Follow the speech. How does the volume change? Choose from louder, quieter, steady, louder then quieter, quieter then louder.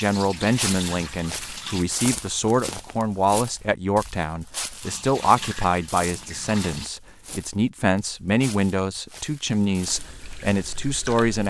steady.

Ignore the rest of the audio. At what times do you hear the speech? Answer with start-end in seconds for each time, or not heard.
0.0-11.4.